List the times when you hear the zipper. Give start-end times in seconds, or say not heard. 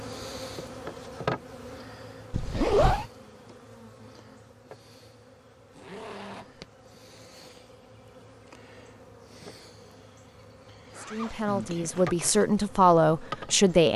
2.3-3.0, 5.8-6.7, 10.9-12.4.